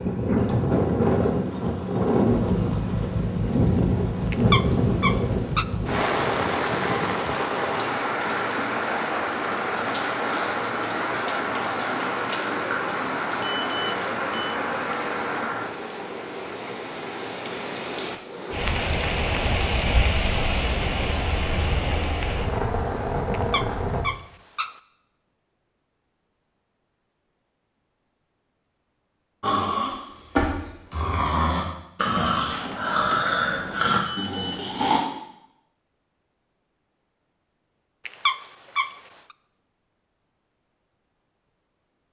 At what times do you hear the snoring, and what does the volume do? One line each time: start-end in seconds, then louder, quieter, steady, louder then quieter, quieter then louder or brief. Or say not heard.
29.4-35.0 steady.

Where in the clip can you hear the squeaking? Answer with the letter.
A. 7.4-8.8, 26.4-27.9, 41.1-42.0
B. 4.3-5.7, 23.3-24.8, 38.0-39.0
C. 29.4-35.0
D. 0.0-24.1
B.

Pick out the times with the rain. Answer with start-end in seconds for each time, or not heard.
0.0-24.1.